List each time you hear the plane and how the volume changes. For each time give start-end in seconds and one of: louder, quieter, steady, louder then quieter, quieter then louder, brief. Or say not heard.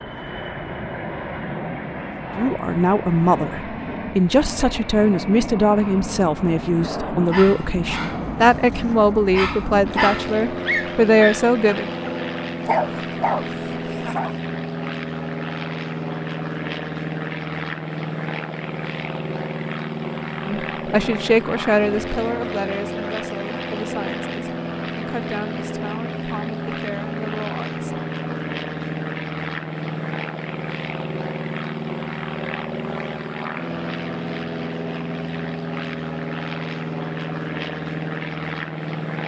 0.0-39.2 steady.